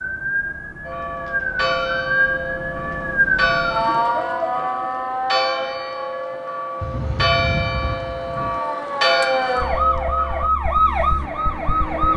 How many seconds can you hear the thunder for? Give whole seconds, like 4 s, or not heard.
2 s.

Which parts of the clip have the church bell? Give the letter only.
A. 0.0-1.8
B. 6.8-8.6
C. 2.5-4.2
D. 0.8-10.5
D.